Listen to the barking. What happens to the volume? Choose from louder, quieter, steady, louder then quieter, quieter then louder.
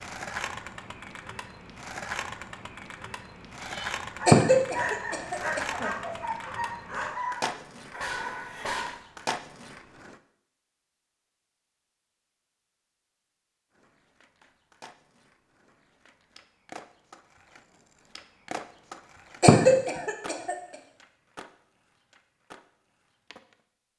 steady.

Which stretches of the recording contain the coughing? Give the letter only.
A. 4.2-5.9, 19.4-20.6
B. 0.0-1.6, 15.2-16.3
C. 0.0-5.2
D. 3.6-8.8
A.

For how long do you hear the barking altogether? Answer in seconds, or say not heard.
5 s.